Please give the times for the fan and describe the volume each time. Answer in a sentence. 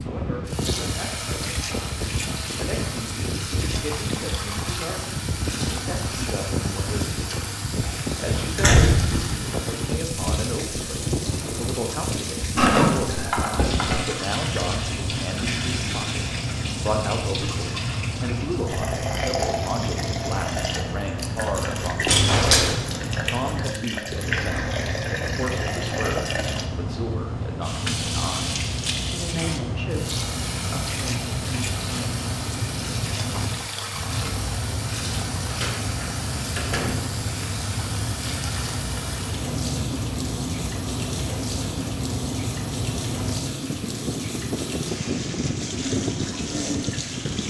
You can hear the fan from 0.0 to 47.4 s, at a steady volume.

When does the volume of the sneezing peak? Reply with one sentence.
The volume of the sneezing peaks at 13 seconds.